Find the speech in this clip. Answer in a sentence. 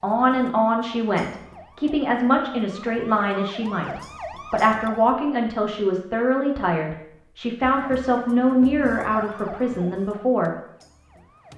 You can hear the speech from 0.0 to 10.6 s.